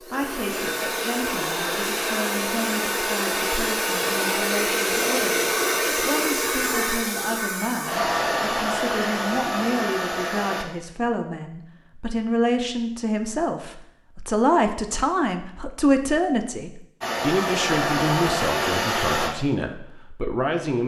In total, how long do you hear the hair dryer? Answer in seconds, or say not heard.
13 s.